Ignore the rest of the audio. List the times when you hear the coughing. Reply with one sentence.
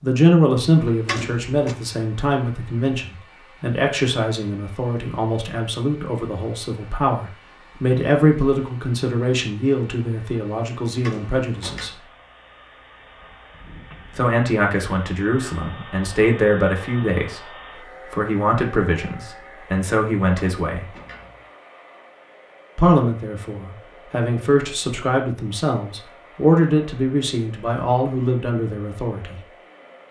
The coughing can't be heard in this clip.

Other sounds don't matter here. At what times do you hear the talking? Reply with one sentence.
The talking can be heard from 0.0 to 12.0 s, from 14.2 to 20.9 s and from 22.8 to 29.4 s.